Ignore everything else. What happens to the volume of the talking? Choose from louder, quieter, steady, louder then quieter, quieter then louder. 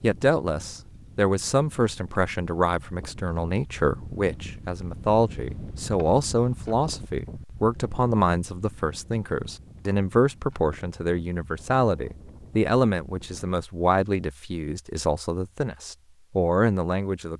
steady.